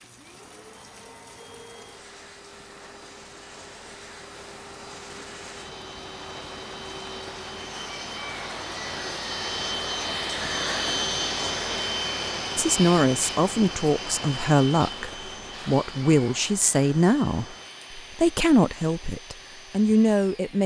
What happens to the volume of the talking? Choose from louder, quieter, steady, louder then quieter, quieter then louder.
steady.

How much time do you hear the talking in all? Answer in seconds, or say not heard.
8 s.